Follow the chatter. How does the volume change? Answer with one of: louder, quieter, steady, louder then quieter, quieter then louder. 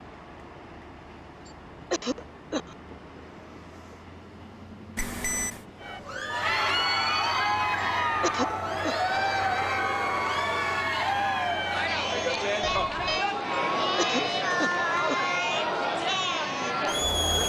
steady.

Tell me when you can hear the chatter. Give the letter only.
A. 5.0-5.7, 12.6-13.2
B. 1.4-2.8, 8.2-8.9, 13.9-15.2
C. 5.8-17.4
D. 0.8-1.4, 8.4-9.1
C.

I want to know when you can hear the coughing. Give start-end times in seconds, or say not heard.
1.4-2.8, 8.2-8.9, 13.9-15.2.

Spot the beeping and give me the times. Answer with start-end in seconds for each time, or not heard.
5.0-5.7, 12.6-13.2.